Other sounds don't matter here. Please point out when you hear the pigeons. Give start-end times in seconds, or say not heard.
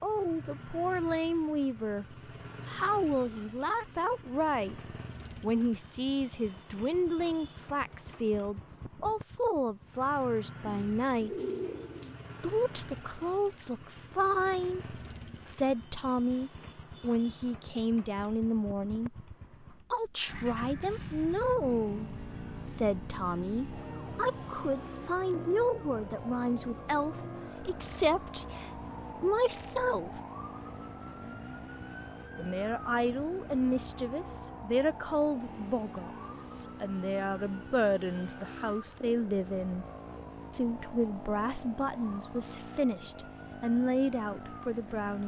10.7-12.2.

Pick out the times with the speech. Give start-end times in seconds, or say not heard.
0.0-4.8, 5.4-11.4, 12.4-30.2, 32.4-39.9, 40.5-45.2.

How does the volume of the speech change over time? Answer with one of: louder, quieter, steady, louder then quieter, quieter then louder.
steady.